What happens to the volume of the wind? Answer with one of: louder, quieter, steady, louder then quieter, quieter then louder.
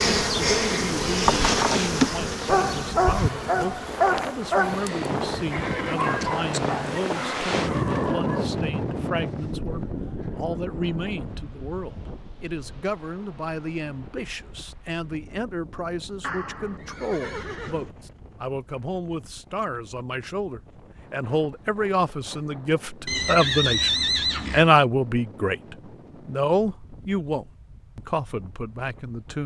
quieter.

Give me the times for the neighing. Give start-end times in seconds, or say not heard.
5.5-6.2, 16.2-17.9, 23.1-24.8.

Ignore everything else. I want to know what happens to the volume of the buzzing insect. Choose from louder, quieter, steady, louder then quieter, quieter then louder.
quieter.